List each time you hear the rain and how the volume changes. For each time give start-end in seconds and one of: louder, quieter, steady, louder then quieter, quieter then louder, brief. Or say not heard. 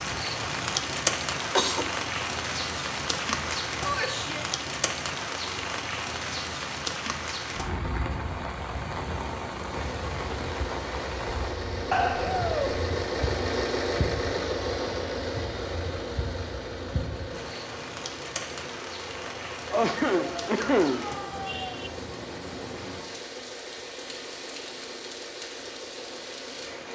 0.0-26.9 quieter.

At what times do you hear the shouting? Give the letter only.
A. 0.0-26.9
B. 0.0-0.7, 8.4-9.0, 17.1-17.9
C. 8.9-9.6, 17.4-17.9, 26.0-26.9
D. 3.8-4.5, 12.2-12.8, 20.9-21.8
D.